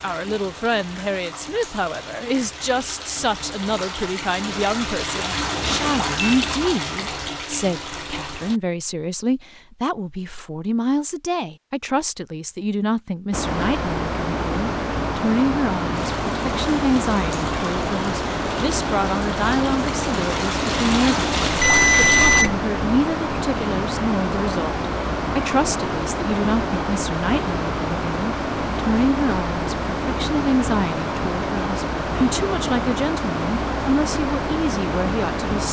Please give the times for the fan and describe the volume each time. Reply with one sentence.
The fan can be heard from 13.3 to 35.6 s, at a steady volume.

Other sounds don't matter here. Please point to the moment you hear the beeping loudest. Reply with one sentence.
The volume of the beeping peaks at 22 seconds.